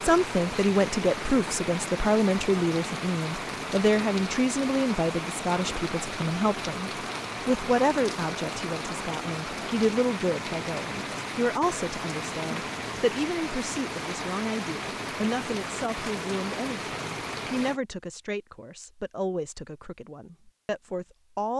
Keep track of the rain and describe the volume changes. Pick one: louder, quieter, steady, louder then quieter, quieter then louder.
steady.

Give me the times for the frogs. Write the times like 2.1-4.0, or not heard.
not heard.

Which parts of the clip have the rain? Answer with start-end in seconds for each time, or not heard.
0.0-17.8.